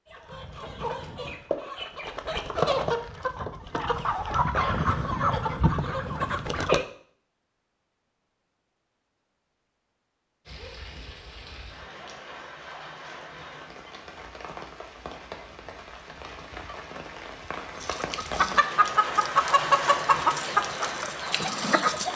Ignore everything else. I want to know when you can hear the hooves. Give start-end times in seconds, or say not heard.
not heard.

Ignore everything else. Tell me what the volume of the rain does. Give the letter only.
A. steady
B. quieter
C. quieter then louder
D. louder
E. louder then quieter
D.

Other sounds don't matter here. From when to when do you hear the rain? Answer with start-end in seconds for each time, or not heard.
10.4-22.1.